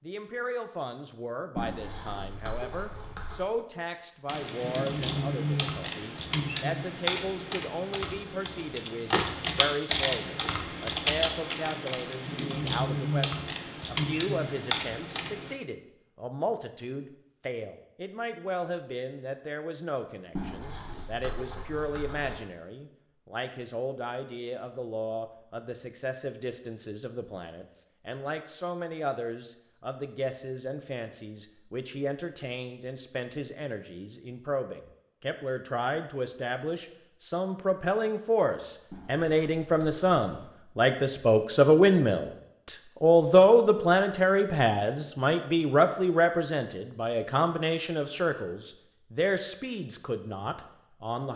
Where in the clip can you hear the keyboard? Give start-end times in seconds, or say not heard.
4.2-15.6.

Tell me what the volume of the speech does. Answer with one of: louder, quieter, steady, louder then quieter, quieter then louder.
louder.